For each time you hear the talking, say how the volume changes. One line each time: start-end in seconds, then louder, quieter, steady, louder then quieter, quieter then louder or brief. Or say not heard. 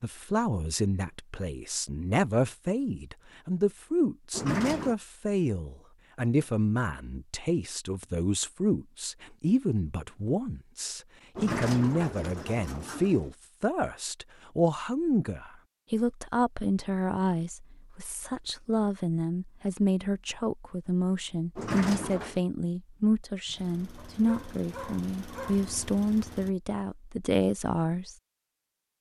0.0-28.1 steady.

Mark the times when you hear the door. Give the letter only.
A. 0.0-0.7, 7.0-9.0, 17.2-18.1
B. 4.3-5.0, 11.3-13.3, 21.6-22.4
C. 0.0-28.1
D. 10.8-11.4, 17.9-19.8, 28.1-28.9
B.